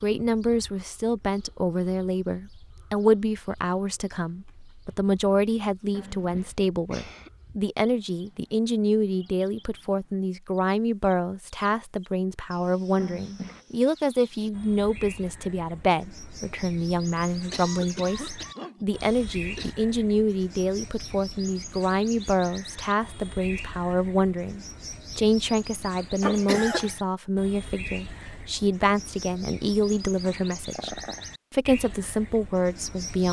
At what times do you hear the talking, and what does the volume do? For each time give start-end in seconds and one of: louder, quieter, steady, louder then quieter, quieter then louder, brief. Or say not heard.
0.0-33.2 steady.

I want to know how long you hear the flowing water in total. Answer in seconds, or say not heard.
not heard.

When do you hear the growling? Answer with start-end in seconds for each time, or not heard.
5.9-6.5, 12.9-13.7, 30.2-31.2.